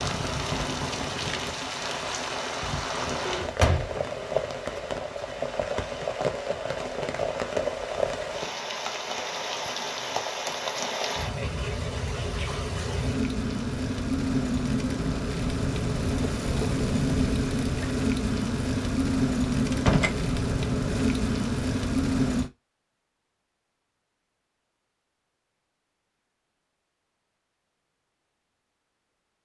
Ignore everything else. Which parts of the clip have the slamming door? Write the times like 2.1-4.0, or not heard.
3.5-4.0, 19.7-20.1.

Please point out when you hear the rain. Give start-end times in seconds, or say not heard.
0.0-22.5.